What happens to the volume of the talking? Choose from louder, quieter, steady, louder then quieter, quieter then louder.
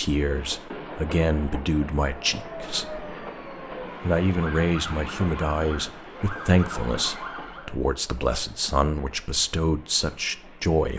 steady.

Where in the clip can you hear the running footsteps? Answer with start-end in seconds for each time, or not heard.
not heard.